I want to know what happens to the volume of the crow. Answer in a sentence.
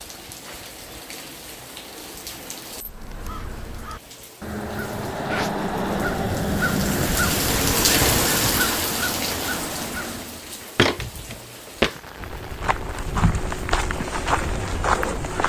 The volume of the crow goes up, then down.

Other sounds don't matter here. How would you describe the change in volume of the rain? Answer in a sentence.
The volume of the rain goes up, then down.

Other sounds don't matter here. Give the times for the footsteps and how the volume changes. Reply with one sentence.
You can hear the footsteps from 10.8 to 15.4 s, getting quieter then louder.